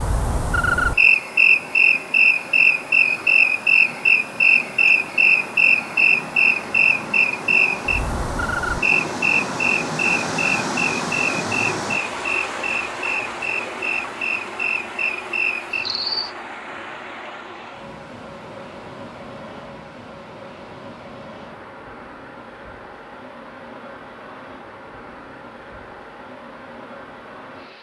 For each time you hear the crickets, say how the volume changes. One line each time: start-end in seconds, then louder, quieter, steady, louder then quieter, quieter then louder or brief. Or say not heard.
0.0-16.4 quieter.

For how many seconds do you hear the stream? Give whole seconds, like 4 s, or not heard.
28 s.